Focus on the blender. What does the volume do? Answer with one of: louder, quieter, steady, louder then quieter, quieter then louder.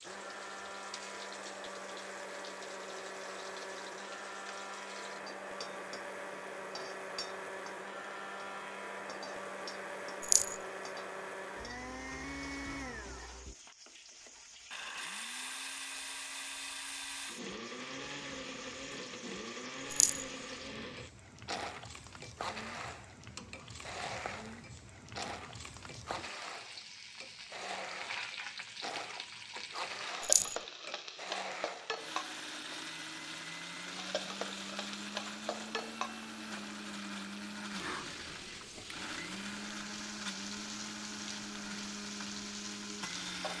steady.